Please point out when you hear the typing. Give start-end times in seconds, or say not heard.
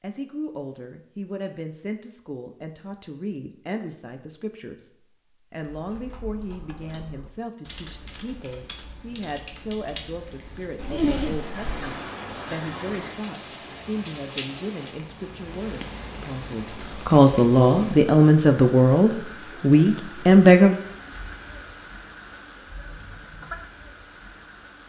5.7-11.0.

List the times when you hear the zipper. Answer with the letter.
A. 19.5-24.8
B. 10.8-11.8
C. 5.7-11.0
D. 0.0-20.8
B.